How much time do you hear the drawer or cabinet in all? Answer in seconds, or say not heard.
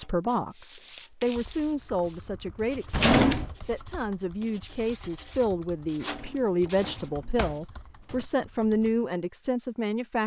3 s.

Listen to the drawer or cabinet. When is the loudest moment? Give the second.
3 s.